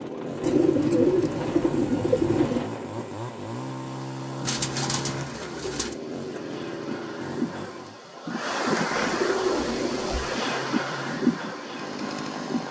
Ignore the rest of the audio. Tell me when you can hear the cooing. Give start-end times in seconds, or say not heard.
0.4-2.6, 4.5-6.0, 8.9-10.4.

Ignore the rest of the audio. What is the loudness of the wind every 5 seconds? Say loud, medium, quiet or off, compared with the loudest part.
medium, loud, loud.